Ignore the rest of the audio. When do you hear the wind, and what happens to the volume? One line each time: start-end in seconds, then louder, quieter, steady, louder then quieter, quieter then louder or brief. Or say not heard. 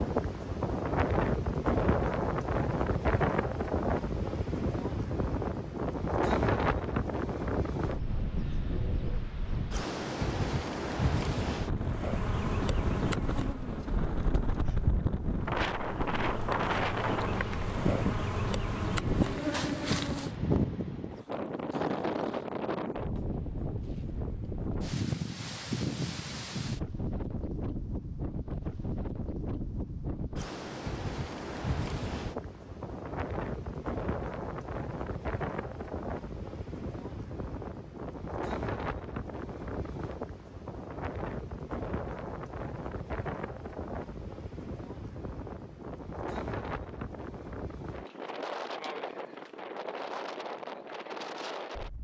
0.0-51.9 quieter.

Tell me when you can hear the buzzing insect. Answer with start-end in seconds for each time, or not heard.
11.7-20.4.